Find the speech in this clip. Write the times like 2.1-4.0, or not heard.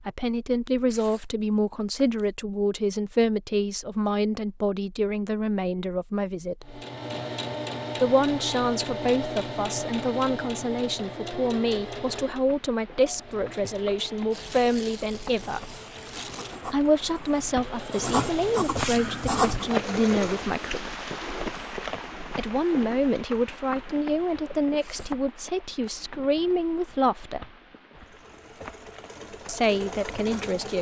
0.1-6.8, 8.0-15.8, 16.7-20.9, 22.4-27.4, 29.4-30.7.